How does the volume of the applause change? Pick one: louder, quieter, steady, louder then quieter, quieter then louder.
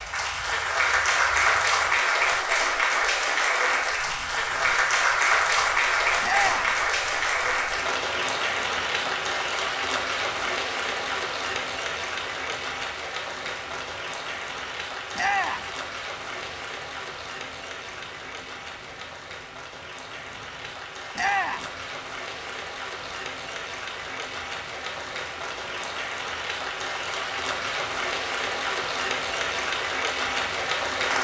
quieter then louder.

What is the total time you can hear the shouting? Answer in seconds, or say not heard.
2 s.